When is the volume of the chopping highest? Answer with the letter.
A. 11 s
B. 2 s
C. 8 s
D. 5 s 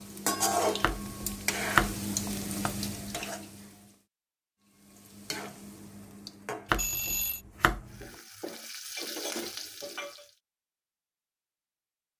B.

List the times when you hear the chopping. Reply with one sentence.
You can hear the chopping from 0.8 to 2.9 s and from 6.7 to 8.1 s.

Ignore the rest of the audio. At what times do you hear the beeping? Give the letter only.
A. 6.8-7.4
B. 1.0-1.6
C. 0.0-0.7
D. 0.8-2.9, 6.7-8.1
A.